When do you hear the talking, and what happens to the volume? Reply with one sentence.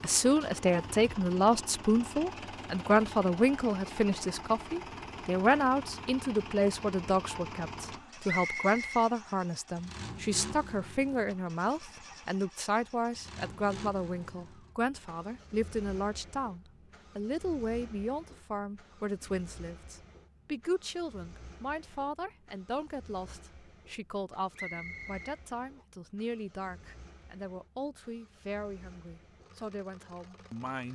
You can hear the talking from 0.0 to 30.8 s, getting quieter.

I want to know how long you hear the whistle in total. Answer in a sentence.
You can hear the whistle for 2 seconds altogether.